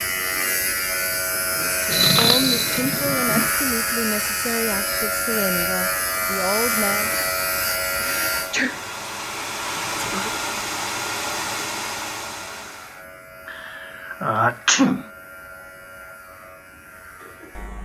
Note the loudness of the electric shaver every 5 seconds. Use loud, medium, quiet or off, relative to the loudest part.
loud, loud, quiet, quiet.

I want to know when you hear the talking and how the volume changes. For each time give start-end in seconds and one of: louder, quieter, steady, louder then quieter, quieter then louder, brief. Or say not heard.
1.5-7.1 steady.